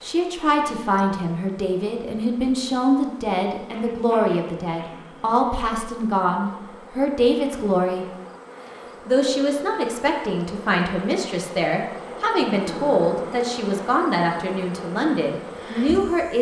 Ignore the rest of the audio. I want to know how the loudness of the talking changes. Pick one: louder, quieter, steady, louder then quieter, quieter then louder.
steady.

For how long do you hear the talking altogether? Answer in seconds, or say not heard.
15 s.